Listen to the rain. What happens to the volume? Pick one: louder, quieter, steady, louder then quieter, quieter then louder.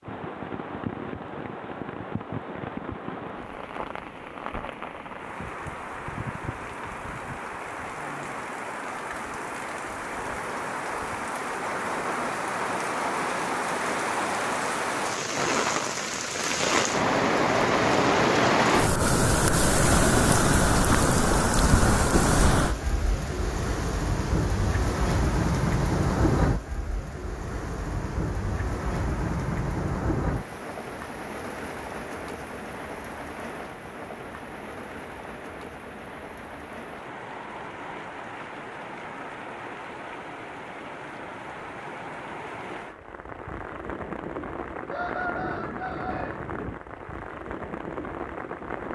louder then quieter.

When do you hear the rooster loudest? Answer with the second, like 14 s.
45 s.